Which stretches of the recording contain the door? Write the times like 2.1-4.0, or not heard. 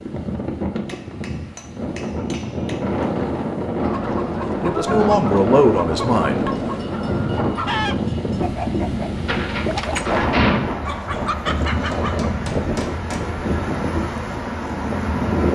9.2-10.8.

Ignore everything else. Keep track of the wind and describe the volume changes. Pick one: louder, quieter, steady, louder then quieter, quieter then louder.
steady.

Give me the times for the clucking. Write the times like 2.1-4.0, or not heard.
3.8-12.3.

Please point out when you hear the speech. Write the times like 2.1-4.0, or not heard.
4.6-6.5.